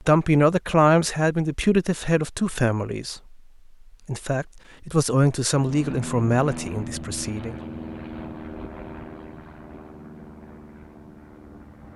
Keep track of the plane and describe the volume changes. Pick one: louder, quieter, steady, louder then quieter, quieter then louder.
quieter.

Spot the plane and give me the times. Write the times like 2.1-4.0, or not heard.
5.5-11.9.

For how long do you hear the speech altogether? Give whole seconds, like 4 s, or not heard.
7 s.